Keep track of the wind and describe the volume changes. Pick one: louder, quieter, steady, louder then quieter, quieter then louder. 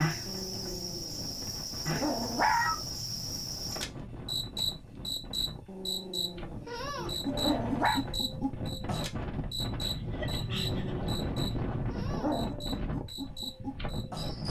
louder.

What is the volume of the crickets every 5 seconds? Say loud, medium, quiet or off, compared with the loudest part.
loud, loud, medium.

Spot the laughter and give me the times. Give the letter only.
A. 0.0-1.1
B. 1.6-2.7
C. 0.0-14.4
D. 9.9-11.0
D.